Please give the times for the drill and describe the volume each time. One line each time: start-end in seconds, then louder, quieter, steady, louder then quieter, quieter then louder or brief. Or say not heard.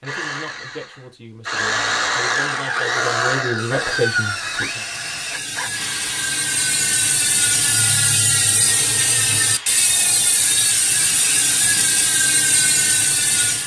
0.0-13.6 quieter.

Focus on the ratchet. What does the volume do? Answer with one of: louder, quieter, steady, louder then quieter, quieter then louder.
louder.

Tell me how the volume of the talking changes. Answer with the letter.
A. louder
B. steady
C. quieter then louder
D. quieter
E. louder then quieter
A.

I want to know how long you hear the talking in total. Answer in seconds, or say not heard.
5 s.